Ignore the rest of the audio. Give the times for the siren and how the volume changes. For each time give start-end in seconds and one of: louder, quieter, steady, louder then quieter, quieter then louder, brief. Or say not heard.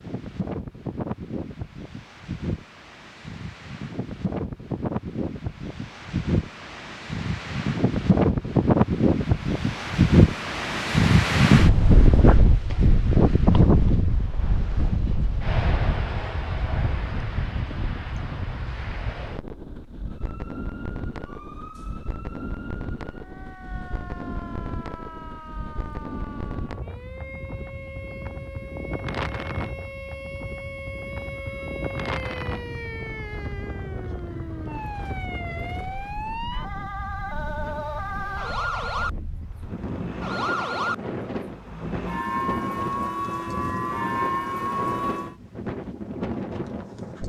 20.1-45.4 louder.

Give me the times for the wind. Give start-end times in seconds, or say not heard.
0.0-47.2.